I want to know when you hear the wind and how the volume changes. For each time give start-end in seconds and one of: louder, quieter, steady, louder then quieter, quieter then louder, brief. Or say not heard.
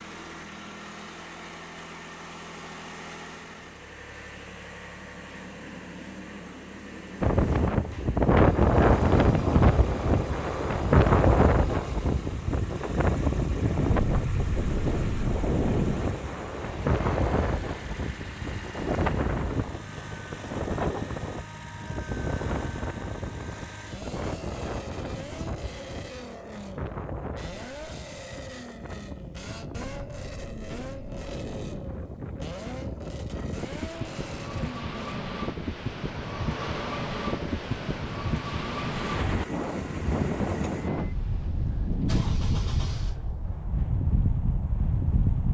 7.2-45.4 quieter then louder.